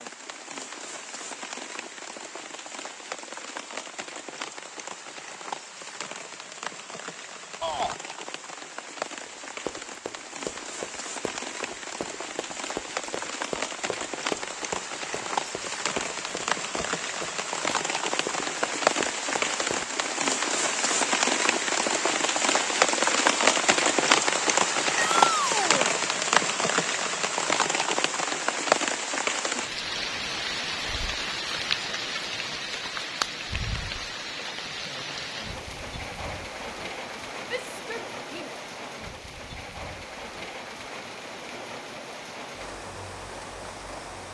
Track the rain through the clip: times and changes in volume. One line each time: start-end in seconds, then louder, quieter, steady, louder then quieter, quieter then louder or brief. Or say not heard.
0.0-44.2 louder then quieter.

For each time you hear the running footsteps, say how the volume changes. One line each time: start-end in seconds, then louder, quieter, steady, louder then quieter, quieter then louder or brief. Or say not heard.
9.2-20.1 steady.